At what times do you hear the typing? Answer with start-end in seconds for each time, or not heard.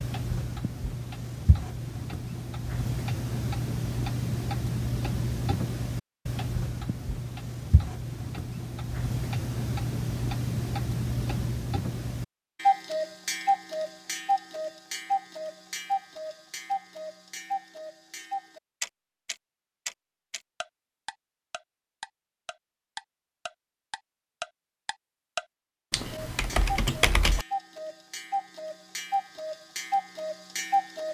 25.9-27.4.